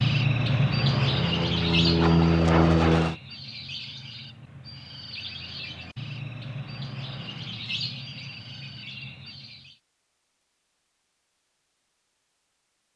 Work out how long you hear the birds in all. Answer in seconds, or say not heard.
10 s.